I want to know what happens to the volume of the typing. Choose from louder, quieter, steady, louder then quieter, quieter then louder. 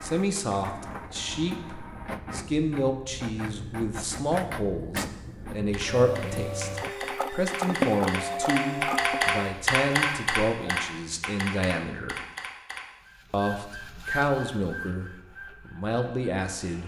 louder then quieter.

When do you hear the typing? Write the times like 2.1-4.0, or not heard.
5.7-12.8.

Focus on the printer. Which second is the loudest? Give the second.
8 s.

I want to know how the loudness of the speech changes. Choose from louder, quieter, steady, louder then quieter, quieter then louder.
steady.